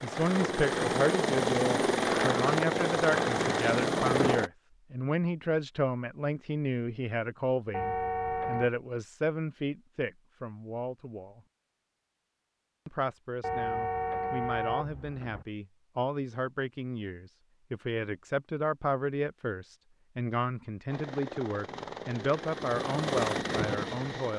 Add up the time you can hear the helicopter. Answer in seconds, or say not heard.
8 s.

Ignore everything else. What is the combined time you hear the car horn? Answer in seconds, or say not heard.
3 s.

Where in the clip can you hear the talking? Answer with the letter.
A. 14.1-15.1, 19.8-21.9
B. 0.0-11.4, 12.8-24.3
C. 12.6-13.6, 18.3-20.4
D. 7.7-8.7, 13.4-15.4
B.